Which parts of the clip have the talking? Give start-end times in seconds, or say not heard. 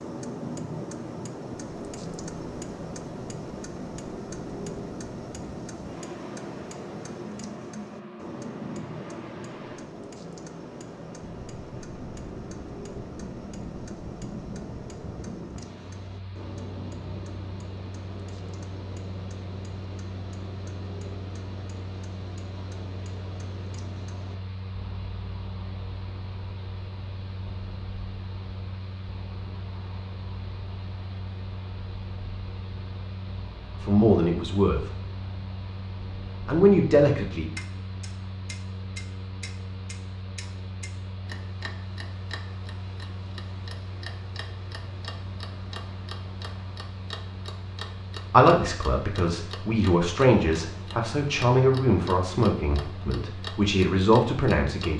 33.8-34.8, 36.5-37.5, 48.3-54.9.